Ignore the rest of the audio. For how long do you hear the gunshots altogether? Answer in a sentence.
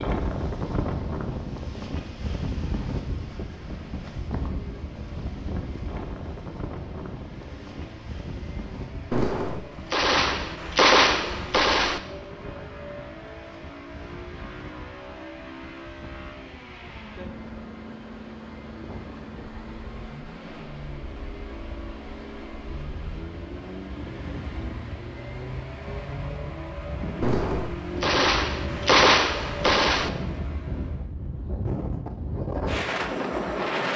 The gunshots can be heard for 6 seconds in total.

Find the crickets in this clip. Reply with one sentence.
You can't hear the crickets here.